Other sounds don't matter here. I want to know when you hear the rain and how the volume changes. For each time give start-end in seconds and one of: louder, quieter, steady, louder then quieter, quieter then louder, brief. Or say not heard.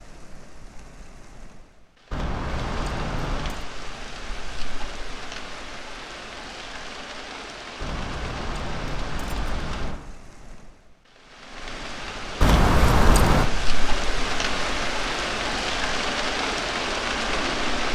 0.0-17.8 louder.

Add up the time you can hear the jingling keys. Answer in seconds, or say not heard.
5 s.